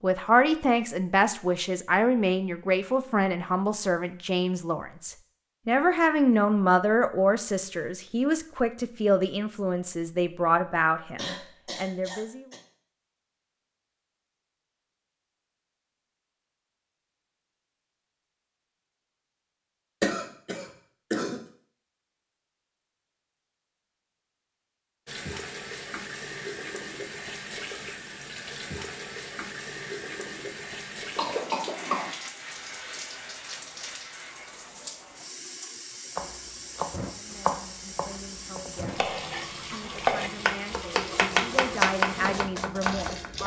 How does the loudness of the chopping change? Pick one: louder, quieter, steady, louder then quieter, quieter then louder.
quieter then louder.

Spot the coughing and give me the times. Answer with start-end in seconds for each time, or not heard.
11.2-12.6, 20.0-21.4, 31.1-32.1.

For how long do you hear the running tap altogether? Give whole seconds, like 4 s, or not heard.
18 s.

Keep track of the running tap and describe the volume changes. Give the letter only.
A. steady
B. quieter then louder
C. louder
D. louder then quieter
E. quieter
A.